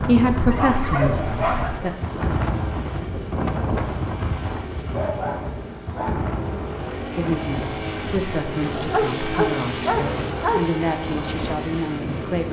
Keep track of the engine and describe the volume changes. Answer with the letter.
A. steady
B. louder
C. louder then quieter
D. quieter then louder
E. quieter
B.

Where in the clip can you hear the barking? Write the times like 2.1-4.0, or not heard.
0.3-1.9, 4.9-6.3, 8.7-10.7.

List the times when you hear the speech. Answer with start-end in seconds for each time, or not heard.
0.0-1.9, 7.2-12.4.